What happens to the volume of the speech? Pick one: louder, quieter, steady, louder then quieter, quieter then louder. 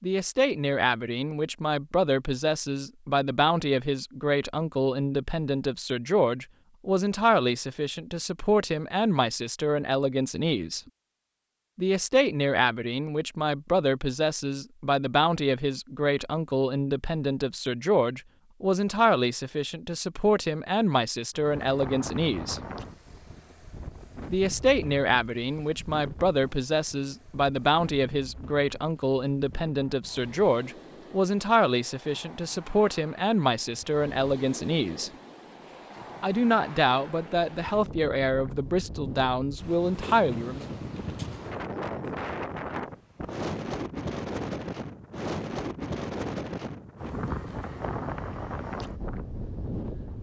steady.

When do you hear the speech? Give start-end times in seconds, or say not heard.
0.0-10.8, 11.8-22.6, 24.3-35.1, 36.2-40.6.